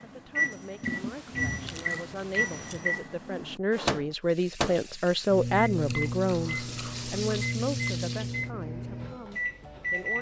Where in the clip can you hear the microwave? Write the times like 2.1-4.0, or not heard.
0.0-10.1.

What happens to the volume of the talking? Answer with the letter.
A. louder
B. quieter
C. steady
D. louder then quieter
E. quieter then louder
D.